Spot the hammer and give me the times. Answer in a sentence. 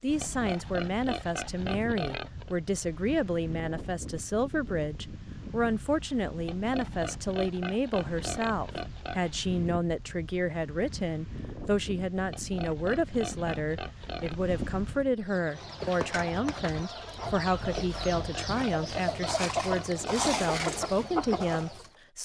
The hammer can't be heard in this clip.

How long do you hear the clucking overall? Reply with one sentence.
You can hear the clucking for 7 seconds altogether.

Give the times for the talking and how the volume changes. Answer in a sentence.
The talking can be heard from 0.0 to 22.1 s, at a steady volume.